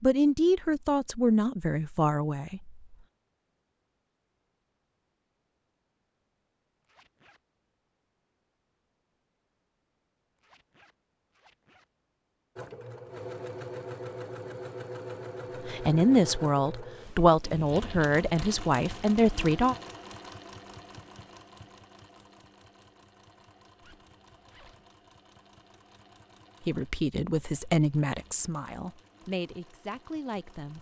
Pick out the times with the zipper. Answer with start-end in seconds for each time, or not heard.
6.8-7.4, 10.3-11.8, 23.8-24.9.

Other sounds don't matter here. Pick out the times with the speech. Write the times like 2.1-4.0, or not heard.
0.0-2.8, 15.7-19.8, 26.6-30.7.